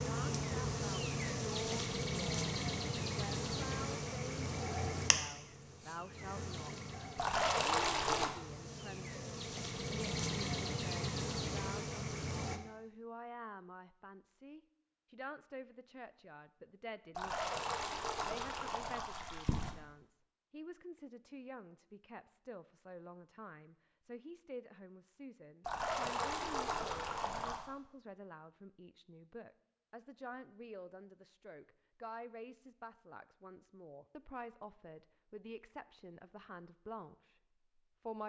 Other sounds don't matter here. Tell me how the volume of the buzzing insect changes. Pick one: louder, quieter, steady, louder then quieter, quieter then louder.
quieter then louder.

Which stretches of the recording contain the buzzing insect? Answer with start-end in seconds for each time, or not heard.
0.0-12.6.